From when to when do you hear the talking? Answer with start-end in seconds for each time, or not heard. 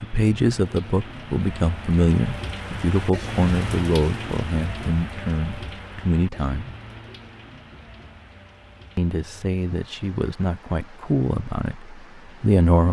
0.0-6.8, 8.9-12.8.